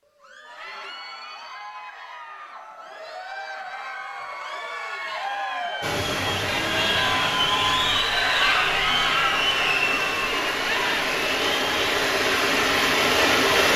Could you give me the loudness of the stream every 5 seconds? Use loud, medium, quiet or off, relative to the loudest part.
off, medium, loud.